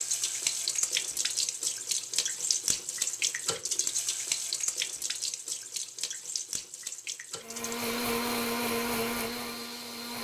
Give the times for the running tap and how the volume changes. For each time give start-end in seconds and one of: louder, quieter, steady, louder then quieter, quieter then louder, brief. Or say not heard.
0.0-10.1 quieter.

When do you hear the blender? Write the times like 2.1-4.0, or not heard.
7.4-10.1.